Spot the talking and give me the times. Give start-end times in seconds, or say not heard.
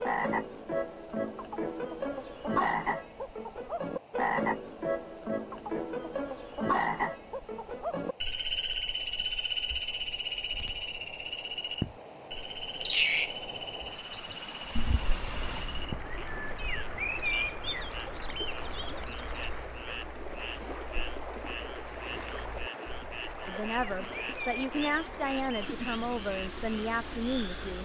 23.4-27.7.